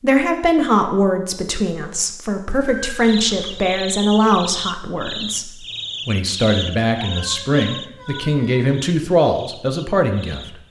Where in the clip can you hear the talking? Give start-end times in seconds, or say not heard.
0.0-10.6.